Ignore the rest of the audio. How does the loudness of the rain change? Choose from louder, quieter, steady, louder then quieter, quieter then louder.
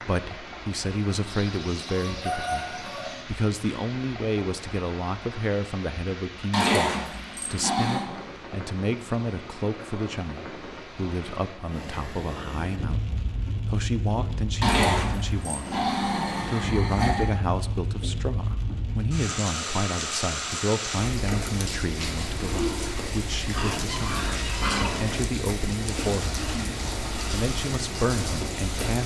louder.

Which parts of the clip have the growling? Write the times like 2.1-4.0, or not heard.
6.5-8.1, 14.6-17.3, 23.5-25.2.